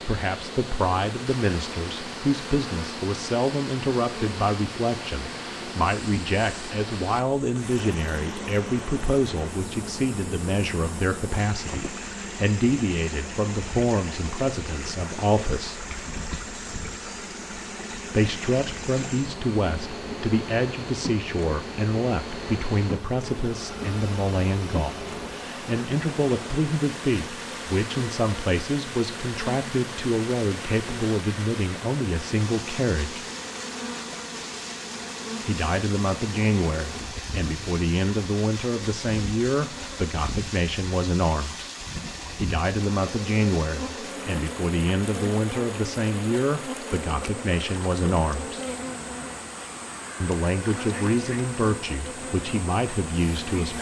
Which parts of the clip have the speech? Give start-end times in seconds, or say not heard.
0.1-15.8, 18.1-33.2, 35.5-41.7, 42.4-48.6, 50.2-53.7.